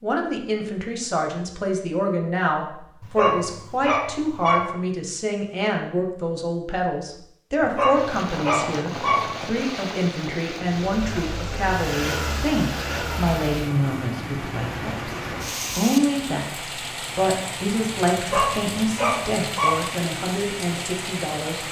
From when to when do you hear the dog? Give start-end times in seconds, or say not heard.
3.0-4.7, 7.6-9.3, 18.1-19.9.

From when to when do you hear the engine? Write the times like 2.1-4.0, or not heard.
10.8-15.7.